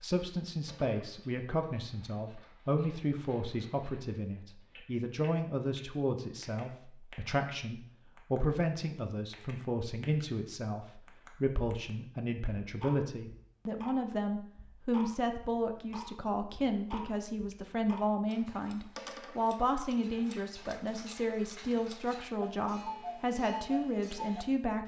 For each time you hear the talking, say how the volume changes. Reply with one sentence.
The talking can be heard from 0.0 to 24.8 s, at a steady volume.